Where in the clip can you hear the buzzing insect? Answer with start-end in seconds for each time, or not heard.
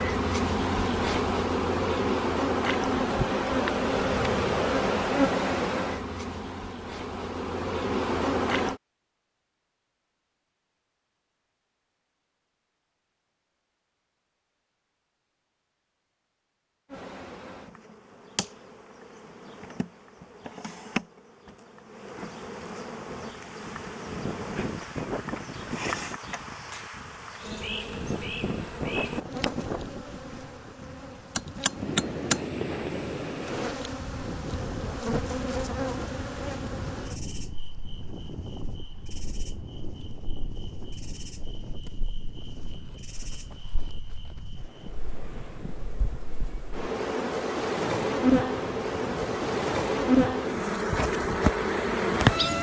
0.0-8.8, 16.9-52.5.